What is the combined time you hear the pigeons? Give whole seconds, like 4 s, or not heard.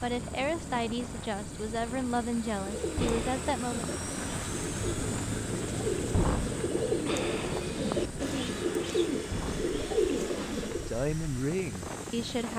8 s.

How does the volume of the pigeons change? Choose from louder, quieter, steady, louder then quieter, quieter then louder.
louder.